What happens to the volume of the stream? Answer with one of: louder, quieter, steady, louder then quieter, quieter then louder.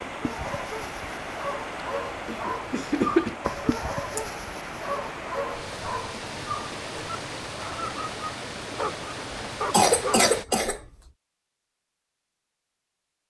steady.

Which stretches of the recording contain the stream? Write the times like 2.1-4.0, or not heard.
0.0-10.4.